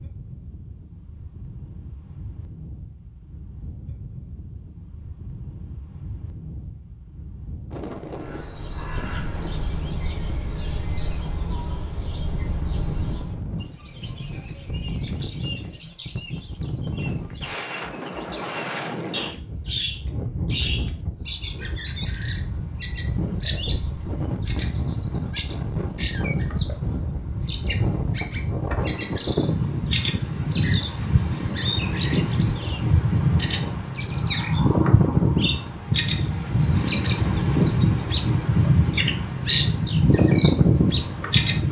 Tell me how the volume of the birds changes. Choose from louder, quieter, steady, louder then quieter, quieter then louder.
louder.